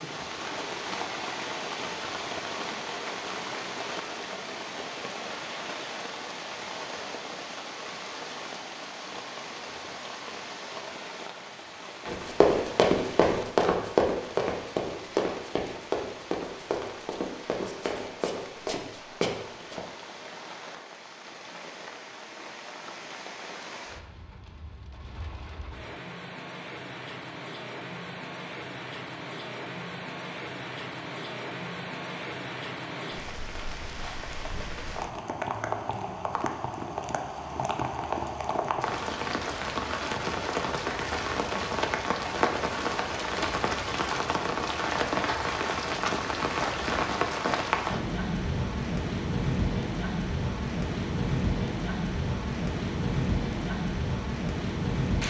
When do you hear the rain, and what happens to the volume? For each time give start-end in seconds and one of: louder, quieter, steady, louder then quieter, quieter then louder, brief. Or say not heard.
0.0-55.2 quieter then louder.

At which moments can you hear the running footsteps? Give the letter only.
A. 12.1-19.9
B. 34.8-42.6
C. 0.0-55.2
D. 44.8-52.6
A.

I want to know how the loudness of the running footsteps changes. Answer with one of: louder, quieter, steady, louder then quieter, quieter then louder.
quieter.